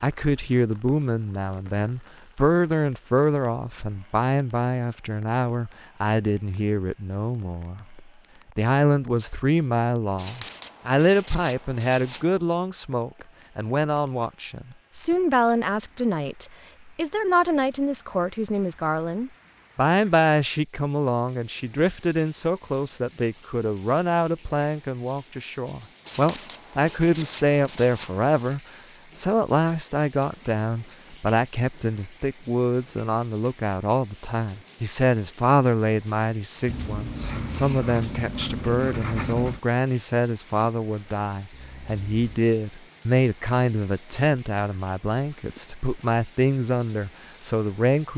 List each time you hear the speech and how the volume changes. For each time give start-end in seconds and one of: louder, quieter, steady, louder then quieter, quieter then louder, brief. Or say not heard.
0.0-48.1 steady.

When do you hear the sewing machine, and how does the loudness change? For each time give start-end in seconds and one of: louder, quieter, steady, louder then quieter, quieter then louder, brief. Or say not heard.
not heard.